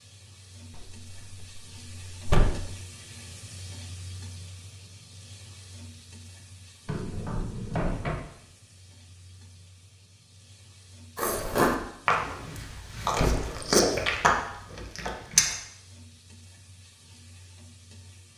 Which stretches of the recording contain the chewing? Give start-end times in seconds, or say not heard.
11.2-15.6.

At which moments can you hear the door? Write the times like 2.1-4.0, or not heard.
0.8-2.6, 6.8-8.2, 12.7-13.7.